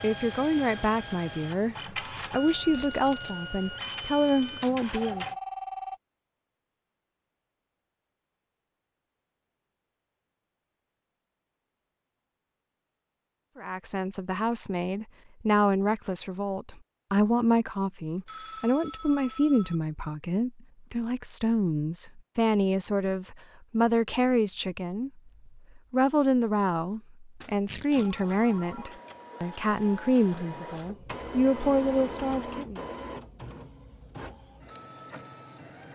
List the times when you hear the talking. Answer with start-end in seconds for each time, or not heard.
0.0-5.2, 13.6-32.8.